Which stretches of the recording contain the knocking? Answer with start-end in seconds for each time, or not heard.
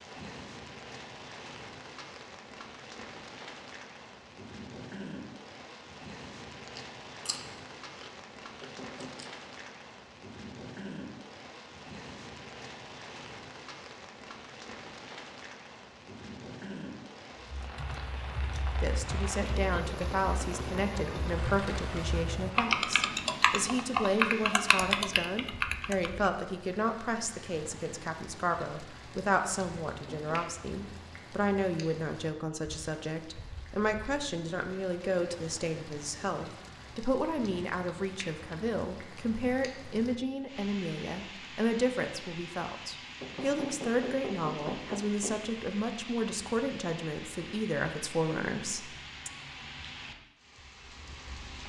8.6-9.2, 29.9-30.4, 43.2-45.5.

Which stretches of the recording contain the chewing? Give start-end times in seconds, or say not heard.
6.7-9.2.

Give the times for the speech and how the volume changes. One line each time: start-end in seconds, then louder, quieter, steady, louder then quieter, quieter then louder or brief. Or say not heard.
18.8-49.3 steady.